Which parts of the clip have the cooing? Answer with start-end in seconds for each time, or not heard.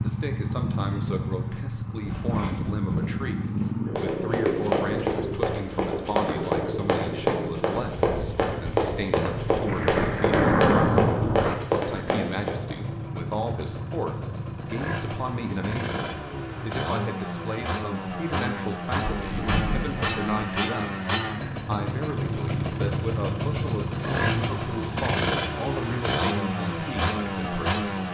not heard.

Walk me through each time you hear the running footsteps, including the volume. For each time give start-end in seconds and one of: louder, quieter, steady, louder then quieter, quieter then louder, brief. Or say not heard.
2.0-12.6 louder.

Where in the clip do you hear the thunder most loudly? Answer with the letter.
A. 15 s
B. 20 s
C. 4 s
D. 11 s
D.